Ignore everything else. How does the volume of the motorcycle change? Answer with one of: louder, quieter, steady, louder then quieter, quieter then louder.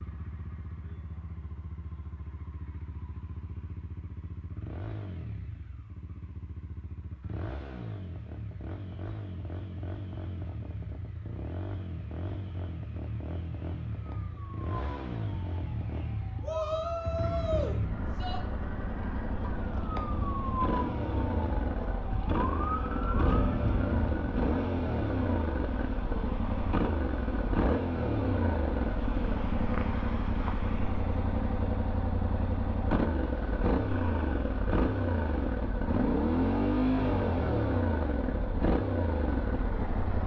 louder.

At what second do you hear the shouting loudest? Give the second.
17 s.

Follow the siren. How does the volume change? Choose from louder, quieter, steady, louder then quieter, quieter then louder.
louder.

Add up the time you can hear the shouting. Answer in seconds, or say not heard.
2 s.